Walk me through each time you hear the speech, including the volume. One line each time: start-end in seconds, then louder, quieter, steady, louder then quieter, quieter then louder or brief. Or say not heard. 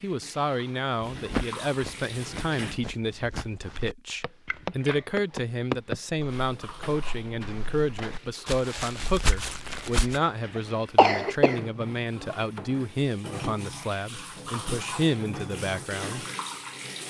0.0-16.2 steady.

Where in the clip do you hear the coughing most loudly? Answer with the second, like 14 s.
11 s.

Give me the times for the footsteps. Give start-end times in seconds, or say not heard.
1.0-10.2.